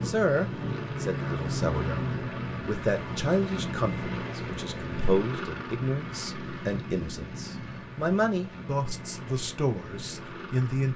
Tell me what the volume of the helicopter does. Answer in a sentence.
The volume of the helicopter goes down.